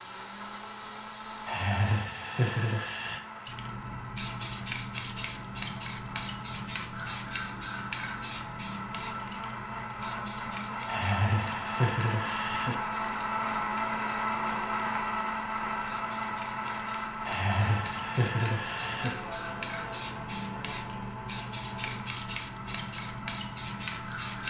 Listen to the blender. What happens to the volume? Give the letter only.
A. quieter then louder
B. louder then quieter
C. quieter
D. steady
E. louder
B.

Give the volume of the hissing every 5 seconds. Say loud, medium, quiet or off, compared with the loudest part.
loud, loud, medium, medium, loud.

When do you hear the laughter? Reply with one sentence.
You can hear the laughter from 1.4 to 3.2 s, from 10.8 to 12.8 s and from 17.2 to 19.1 s.